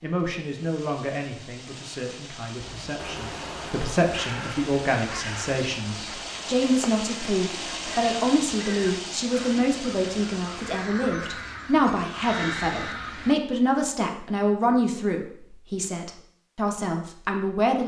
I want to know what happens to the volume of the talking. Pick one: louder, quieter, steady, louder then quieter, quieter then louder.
louder.